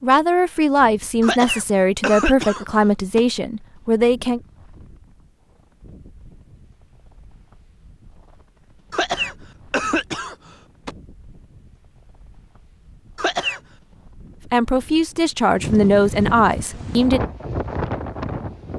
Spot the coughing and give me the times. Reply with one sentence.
You can hear the coughing from 1.2 to 3.2 s, from 8.9 to 10.9 s and from 13.2 to 13.6 s.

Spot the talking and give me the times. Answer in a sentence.
You can hear the talking from 0.0 to 4.4 s and from 14.5 to 17.2 s.